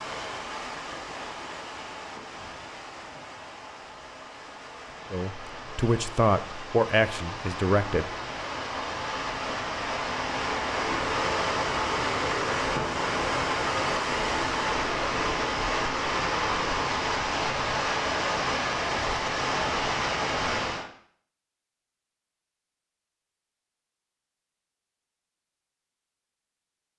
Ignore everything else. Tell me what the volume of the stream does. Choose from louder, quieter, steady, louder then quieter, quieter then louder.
louder.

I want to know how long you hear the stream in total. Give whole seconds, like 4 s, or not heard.
21 s.